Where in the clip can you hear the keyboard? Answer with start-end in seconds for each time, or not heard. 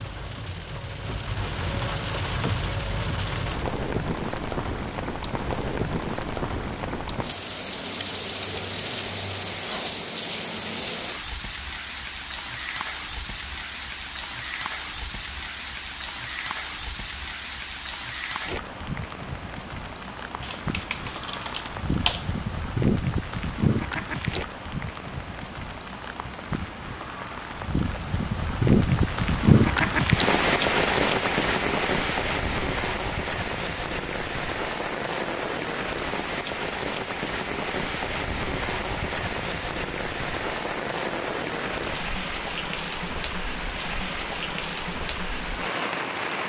20.4-22.4.